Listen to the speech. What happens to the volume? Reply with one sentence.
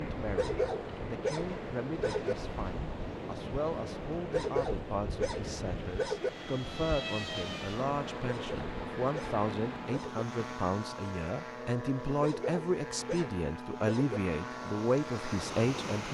The volume of the speech goes up.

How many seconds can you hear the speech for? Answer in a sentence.
You can hear the speech for 16 seconds altogether.